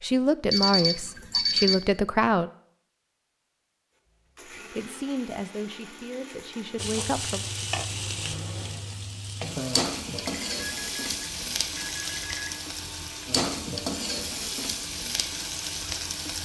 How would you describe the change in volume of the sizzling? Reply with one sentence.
The volume of the sizzling stays about the same.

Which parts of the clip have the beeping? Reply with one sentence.
The beeping can be heard from 0.5 to 1.8 s and from 10.2 to 12.7 s.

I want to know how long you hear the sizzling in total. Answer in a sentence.
The sizzling can be heard for 10 seconds in total.